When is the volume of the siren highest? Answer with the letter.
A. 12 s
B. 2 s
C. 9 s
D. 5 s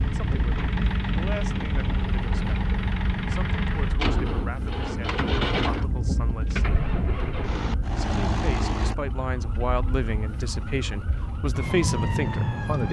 A.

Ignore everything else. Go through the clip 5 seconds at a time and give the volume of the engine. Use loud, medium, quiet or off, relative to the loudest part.
loud, loud, off.